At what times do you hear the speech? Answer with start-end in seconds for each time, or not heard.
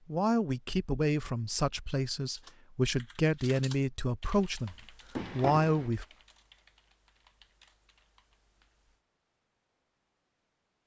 0.1-4.8, 5.3-6.0.